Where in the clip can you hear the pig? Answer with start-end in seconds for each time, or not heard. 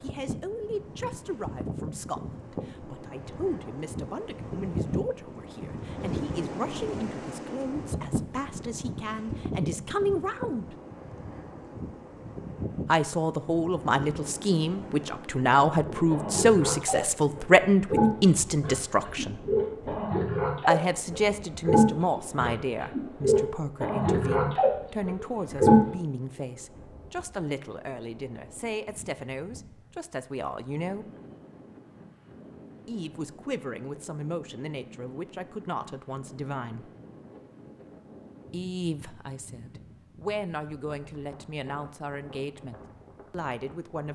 15.9-25.9.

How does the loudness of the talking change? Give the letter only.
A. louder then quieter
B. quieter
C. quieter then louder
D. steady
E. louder
A.